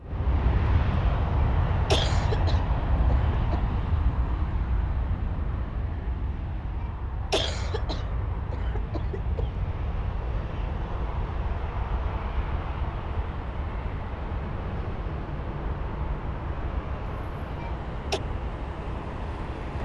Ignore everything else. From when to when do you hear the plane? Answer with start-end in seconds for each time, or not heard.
0.0-19.8.